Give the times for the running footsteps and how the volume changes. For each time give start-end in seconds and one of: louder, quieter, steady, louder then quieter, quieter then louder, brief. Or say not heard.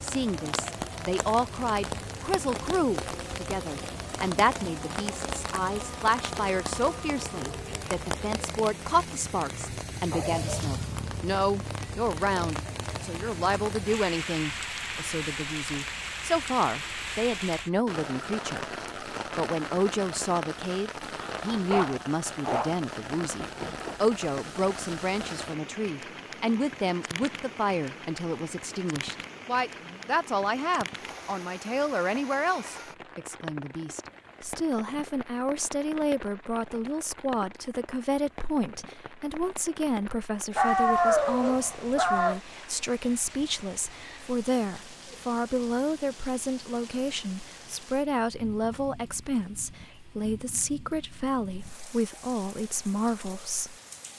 not heard.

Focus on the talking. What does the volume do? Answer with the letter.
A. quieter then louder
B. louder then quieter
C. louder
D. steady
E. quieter
D.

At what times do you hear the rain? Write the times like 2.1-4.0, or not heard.
0.0-54.1.